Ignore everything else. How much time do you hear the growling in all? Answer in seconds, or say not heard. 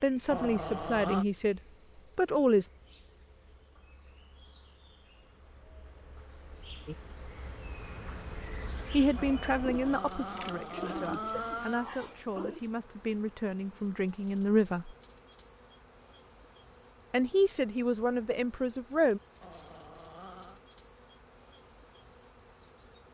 5 s.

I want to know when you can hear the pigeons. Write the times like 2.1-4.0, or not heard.
9.6-12.6.